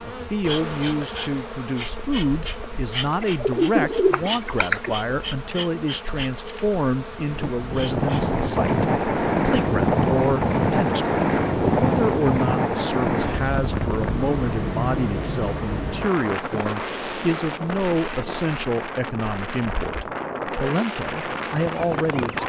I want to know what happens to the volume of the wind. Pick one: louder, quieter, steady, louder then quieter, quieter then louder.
quieter.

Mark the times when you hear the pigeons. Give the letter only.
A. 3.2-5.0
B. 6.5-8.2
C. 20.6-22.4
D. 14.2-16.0
A.